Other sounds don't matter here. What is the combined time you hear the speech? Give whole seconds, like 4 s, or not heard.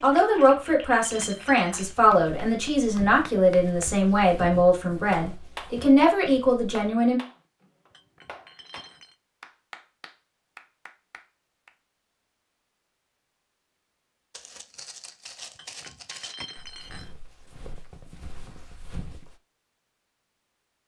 7 s.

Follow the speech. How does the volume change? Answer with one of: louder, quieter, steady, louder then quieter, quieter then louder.
steady.